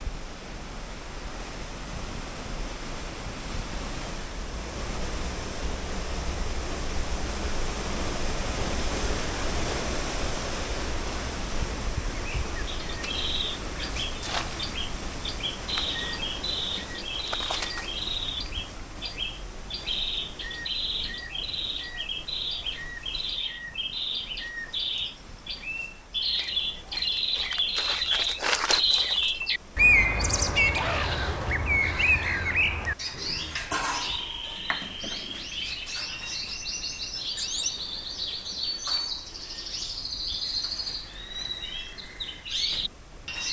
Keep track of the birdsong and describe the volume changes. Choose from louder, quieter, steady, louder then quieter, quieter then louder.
louder then quieter.